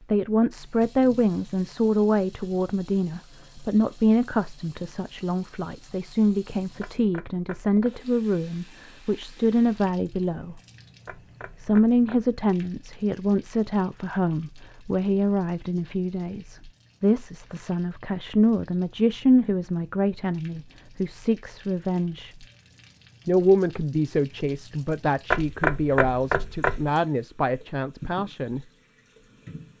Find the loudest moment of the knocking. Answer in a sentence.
The loudest moment of the knocking is at 26 seconds.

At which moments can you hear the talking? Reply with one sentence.
The talking can be heard from 0.1 to 10.6 s, from 11.5 to 22.4 s and from 23.2 to 28.6 s.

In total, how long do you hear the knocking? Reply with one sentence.
You can hear the knocking for 4 seconds altogether.